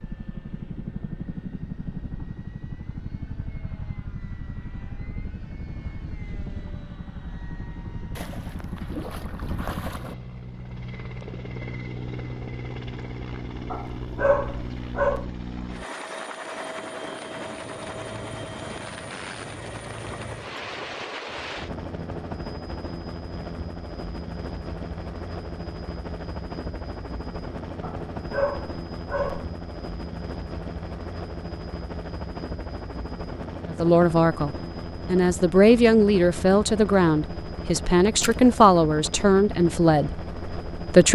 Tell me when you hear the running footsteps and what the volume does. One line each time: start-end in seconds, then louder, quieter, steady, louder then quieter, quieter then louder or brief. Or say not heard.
not heard.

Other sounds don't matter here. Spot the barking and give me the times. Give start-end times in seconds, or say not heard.
13.7-15.2, 27.8-29.4.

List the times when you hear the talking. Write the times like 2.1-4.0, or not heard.
33.7-41.0.